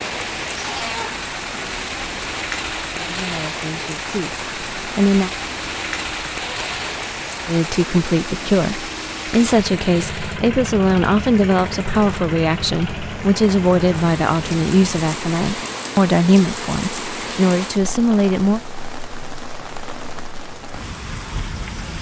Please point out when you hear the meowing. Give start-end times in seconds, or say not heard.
0.4-1.2.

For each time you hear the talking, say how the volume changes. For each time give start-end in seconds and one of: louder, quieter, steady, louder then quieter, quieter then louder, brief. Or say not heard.
3.0-5.3 brief
7.5-18.6 steady.